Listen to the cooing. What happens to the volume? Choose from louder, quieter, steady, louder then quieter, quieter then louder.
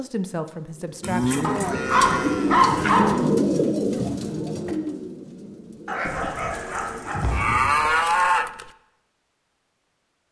louder then quieter.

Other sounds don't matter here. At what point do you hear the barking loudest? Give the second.
3 s.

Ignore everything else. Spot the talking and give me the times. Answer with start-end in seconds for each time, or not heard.
0.0-1.5.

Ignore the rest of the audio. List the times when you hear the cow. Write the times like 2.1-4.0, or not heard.
1.0-3.0, 7.2-8.7.